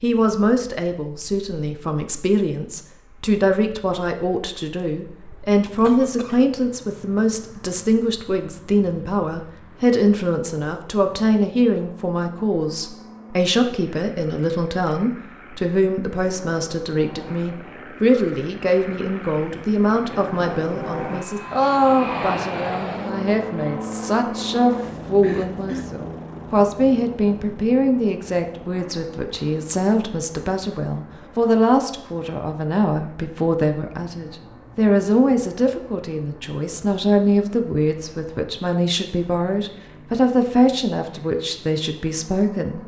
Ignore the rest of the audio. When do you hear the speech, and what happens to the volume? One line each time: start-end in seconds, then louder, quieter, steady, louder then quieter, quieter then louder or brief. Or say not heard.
0.0-42.8 steady.